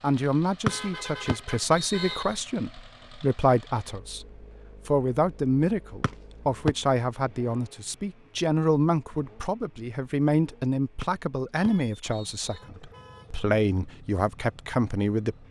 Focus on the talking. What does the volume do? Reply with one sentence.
The volume of the talking stays about the same.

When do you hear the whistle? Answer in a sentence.
You can hear the whistle from 0.7 to 2.4 s, from 6.0 to 6.8 s and from 11.0 to 12.4 s.